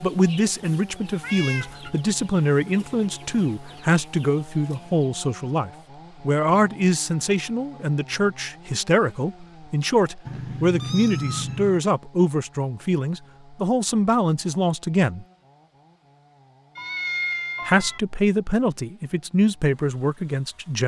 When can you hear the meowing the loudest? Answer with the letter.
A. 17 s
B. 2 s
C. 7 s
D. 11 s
A.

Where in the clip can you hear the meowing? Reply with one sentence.
The meowing can be heard from 1.2 to 1.8 s, from 10.2 to 11.8 s and from 16.8 to 18.0 s.